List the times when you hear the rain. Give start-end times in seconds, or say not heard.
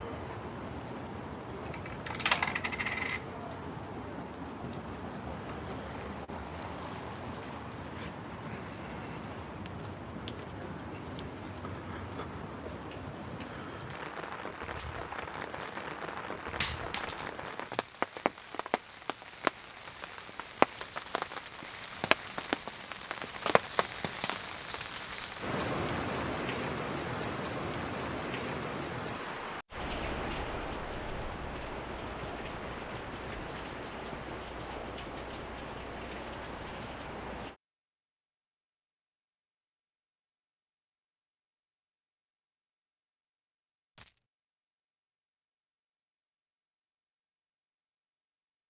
0.0-37.5.